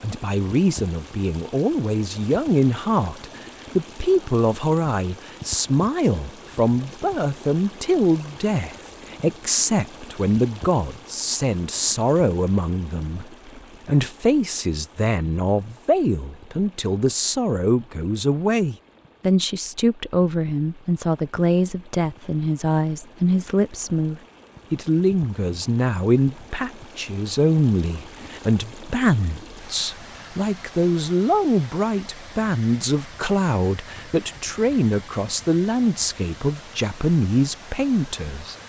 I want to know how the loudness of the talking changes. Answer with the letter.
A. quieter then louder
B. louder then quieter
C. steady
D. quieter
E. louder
C.